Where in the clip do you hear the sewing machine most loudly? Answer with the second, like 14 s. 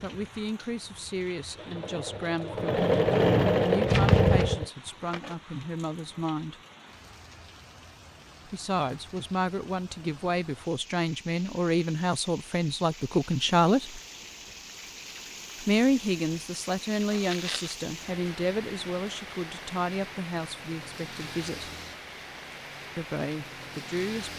4 s.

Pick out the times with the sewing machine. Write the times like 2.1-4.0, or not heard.
0.0-4.7.